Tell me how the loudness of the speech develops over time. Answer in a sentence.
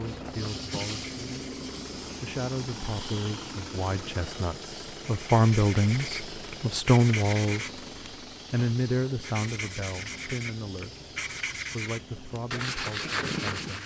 The loudness of the speech goes up, then down.